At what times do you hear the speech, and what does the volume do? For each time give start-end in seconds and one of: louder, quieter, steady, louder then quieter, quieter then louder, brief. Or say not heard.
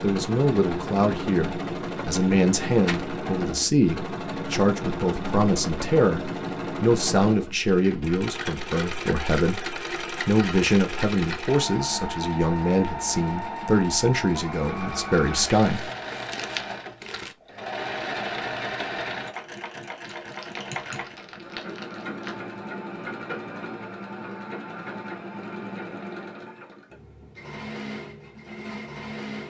0.0-15.8 steady.